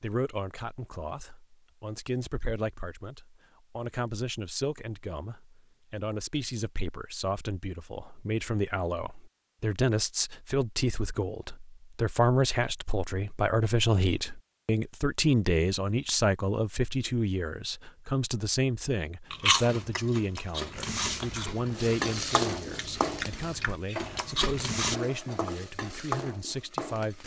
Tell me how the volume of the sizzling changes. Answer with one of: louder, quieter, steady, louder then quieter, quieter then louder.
quieter then louder.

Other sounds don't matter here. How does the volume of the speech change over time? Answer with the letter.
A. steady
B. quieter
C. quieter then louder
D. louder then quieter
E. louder
D.